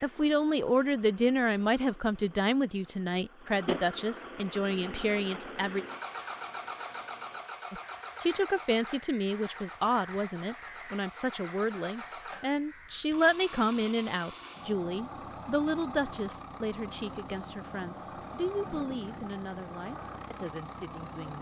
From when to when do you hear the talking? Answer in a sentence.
The talking can be heard from 0.0 to 5.8 s and from 7.7 to 21.3 s.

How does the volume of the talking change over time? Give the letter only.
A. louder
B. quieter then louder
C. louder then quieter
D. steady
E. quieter
E.